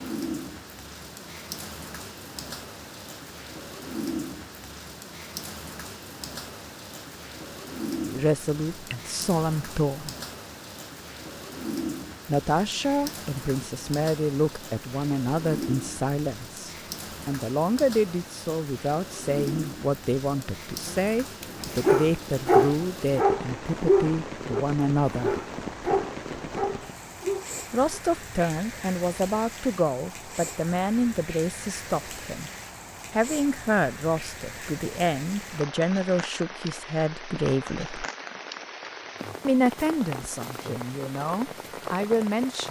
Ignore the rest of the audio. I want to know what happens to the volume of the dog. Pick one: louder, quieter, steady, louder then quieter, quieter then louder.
quieter.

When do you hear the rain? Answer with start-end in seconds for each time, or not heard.
0.0-42.6.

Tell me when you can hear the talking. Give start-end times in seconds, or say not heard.
8.1-10.2, 12.2-25.4, 27.7-32.5, 33.1-38.0, 39.5-42.6.